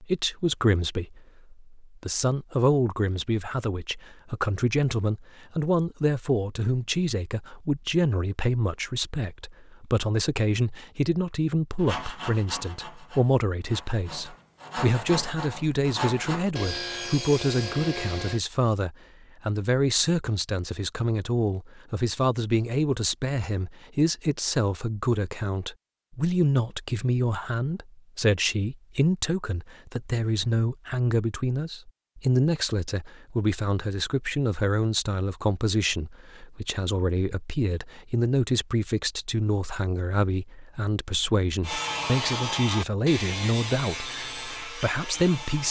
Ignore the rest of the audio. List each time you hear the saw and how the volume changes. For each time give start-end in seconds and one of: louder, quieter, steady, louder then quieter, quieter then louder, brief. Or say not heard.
11.8-18.4 quieter then louder
41.6-45.6 quieter.